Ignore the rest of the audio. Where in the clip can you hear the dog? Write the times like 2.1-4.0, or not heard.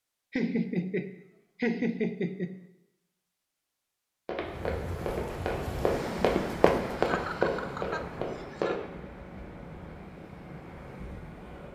not heard.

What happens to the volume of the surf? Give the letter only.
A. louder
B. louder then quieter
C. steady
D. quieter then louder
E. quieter
E.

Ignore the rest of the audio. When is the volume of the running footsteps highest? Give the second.
7 s.